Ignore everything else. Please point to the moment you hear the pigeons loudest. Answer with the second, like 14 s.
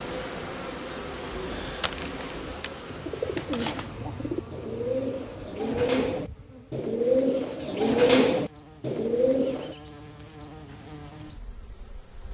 8 s.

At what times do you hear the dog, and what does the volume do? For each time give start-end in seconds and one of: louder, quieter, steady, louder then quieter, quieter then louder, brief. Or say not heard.
not heard.